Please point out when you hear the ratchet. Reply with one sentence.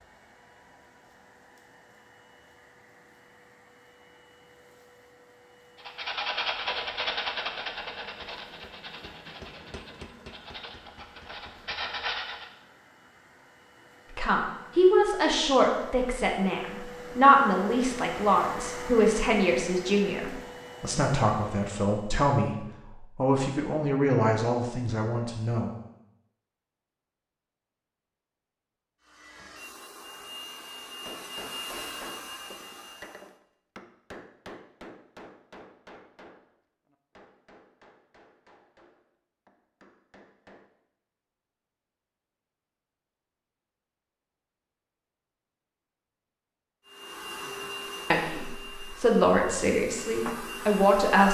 You can't hear the ratchet here.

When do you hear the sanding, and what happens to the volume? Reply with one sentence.
You can hear the sanding from 5.8 to 12.5 s, getting quieter then louder.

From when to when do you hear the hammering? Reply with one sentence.
The hammering can be heard from 7.3 to 11.8 s and from 31.1 to 40.7 s.